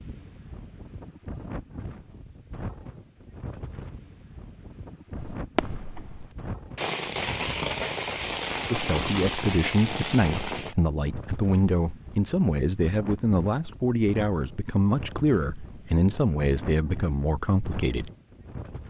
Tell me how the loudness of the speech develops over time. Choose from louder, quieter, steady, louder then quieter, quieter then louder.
steady.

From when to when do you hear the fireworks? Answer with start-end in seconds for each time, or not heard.
5.2-10.8.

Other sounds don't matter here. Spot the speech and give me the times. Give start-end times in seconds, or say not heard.
8.7-18.1.